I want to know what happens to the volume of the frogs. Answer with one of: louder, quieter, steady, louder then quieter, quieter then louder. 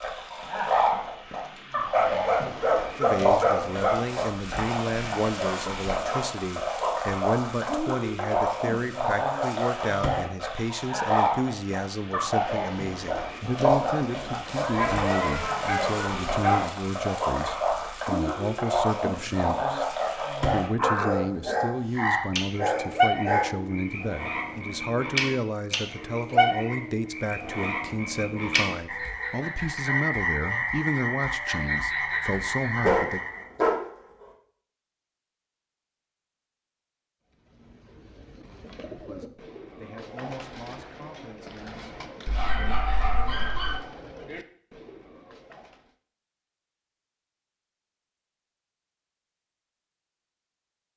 steady.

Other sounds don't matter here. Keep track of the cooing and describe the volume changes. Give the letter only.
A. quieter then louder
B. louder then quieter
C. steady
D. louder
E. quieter
C.